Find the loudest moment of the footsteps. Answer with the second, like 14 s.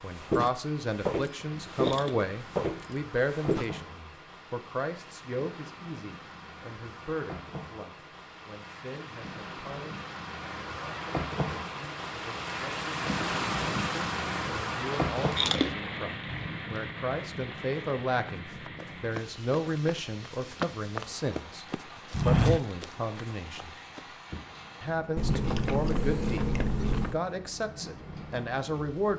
22 s.